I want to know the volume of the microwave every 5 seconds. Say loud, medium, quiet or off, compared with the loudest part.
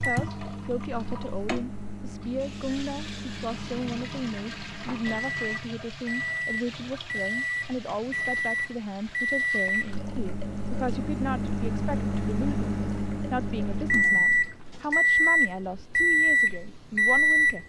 quiet, medium, medium, loud.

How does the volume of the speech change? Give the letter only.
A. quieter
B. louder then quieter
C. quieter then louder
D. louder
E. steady
E.